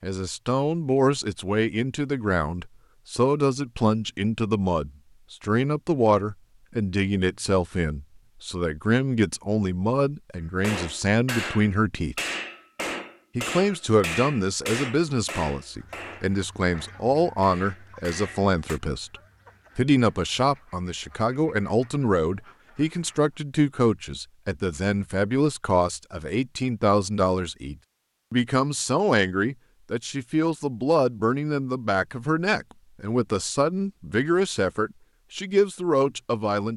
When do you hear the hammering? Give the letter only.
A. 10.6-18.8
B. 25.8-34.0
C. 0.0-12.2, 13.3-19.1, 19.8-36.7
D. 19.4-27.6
A.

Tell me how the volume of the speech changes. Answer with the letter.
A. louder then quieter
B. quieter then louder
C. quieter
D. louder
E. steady
E.